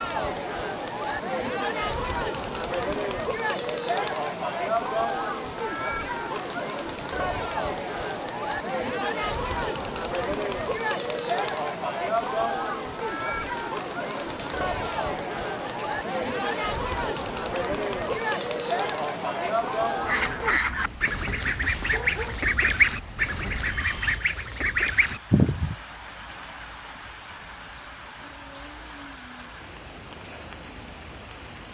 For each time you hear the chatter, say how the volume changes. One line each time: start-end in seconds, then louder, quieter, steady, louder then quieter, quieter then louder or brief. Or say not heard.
0.0-20.6 steady.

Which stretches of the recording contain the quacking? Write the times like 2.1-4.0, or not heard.
20.1-25.8.